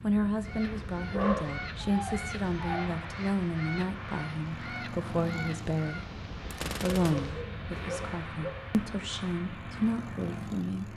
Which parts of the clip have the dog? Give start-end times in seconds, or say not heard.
1.1-3.0, 7.0-8.7.